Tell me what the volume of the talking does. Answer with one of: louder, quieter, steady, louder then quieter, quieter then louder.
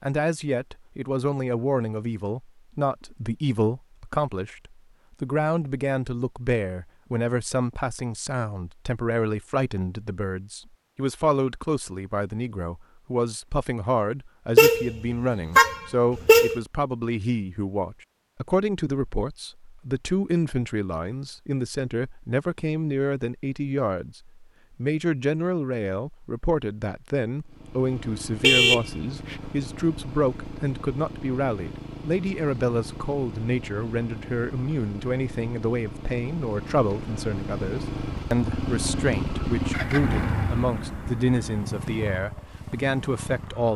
steady.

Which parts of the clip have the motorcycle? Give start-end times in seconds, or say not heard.
27.4-43.7.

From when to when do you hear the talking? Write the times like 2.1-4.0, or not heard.
0.0-43.7.